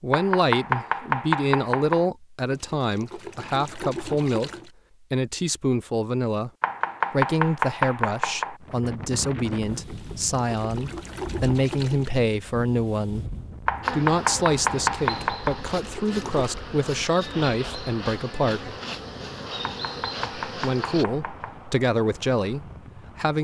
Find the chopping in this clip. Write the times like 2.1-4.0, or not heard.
0.1-2.1, 6.6-8.6, 13.7-15.6, 19.6-21.6.